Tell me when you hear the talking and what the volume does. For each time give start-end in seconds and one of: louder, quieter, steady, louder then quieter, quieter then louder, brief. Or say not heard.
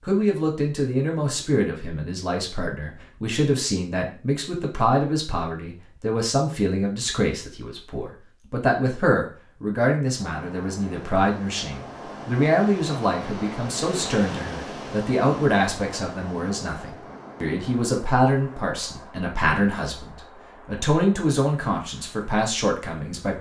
0.0-23.3 steady.